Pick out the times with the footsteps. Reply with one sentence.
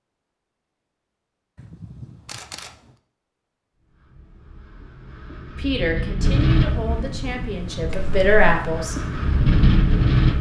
You can't hear the footsteps here.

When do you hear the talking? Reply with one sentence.
You can hear the talking from 5.5 to 8.9 s.